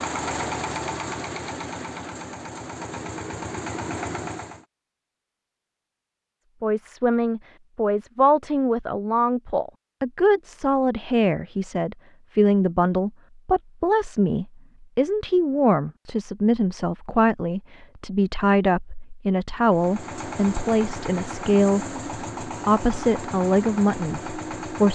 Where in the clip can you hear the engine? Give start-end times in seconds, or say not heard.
0.0-4.7, 19.6-24.9.